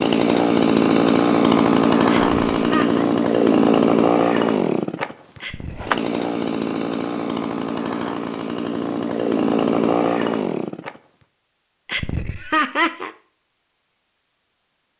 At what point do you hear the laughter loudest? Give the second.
13 s.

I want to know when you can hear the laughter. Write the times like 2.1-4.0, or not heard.
2.3-3.0, 5.4-6.0, 11.8-13.1.